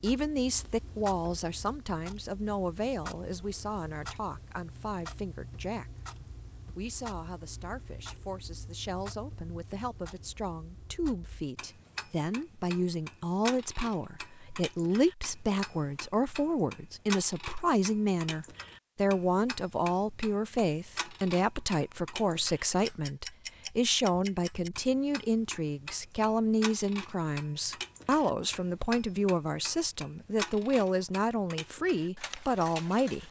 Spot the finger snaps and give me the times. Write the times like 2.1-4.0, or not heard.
not heard.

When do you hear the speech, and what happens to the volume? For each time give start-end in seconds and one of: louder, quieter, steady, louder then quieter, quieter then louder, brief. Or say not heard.
0.0-5.8 quieter
6.8-33.2 louder.